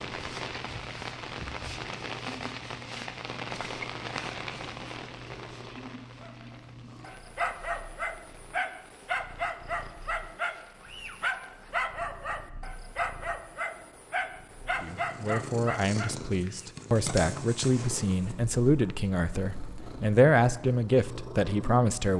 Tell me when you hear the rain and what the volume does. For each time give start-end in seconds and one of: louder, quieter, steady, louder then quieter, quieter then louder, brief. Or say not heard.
0.0-11.6 quieter.